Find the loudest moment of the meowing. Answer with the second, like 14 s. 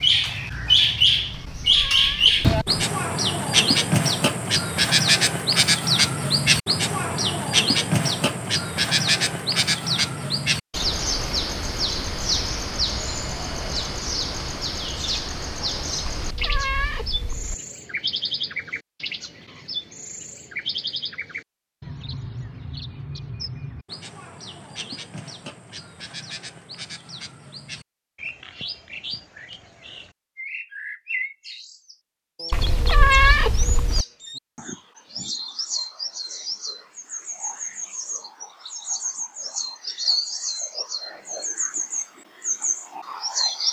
33 s.